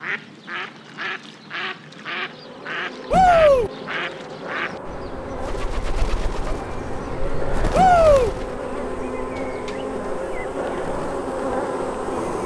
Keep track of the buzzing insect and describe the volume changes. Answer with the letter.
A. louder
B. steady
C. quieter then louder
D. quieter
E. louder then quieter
A.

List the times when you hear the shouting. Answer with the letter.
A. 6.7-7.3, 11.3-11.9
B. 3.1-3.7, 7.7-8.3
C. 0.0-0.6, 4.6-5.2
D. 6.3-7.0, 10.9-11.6
B.